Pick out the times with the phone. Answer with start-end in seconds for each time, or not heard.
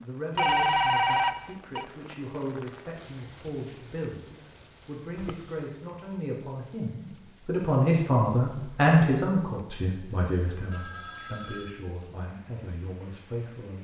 0.3-1.9, 5.2-5.7, 10.7-11.8.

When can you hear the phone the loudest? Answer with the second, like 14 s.
1 s.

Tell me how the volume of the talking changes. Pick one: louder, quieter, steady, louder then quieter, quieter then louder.
louder then quieter.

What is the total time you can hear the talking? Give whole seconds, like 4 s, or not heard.
14 s.